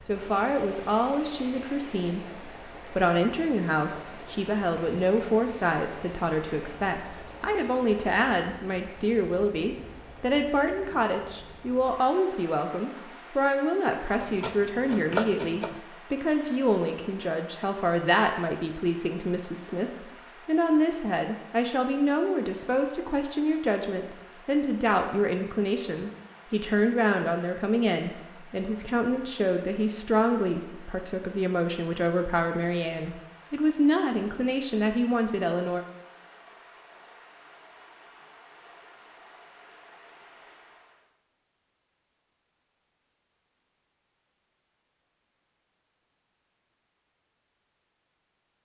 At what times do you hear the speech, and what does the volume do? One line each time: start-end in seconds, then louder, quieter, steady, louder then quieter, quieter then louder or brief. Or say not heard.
0.0-35.8 steady.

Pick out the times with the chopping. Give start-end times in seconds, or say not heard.
14.2-15.8.